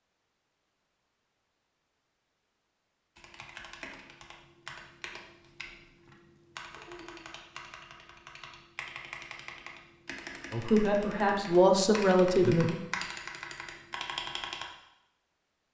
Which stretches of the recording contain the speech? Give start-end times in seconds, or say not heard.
10.5-12.8.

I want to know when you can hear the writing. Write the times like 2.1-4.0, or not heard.
not heard.